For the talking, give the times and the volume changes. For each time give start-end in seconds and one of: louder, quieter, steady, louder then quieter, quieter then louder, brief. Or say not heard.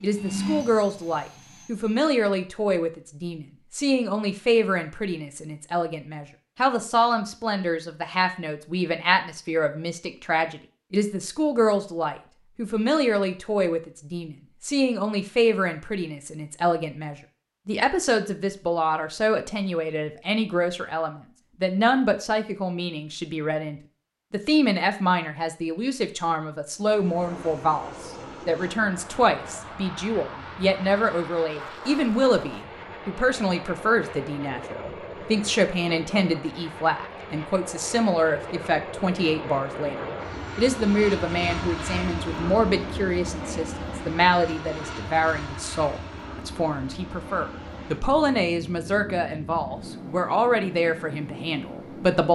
0.0-52.3 steady.